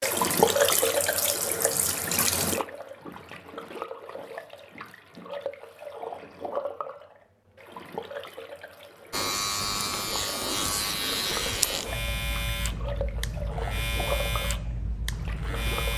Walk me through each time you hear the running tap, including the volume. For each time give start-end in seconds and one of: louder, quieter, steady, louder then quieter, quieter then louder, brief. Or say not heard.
0.0-15.9 quieter.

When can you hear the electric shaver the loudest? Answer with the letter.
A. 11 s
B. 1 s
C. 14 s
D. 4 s
A.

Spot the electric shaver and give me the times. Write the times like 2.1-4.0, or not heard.
9.1-15.9.